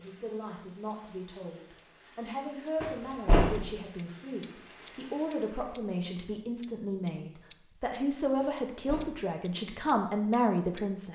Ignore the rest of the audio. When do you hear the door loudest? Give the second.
3 s.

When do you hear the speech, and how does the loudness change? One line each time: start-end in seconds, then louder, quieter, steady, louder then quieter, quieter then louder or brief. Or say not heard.
0.0-11.1 louder.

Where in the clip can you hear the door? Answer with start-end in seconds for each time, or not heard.
2.8-3.6, 8.4-9.2.